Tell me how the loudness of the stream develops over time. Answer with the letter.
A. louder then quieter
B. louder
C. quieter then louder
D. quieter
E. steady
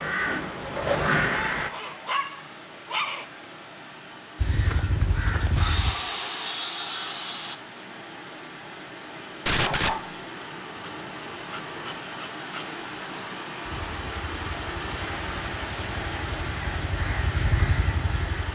B.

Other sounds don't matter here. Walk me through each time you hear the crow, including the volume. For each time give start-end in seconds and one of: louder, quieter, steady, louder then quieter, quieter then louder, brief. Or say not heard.
0.0-1.7 brief
4.3-6.0 brief
13.7-18.5 louder.